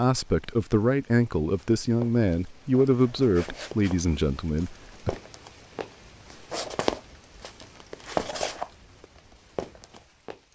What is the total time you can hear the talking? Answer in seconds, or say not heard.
5 s.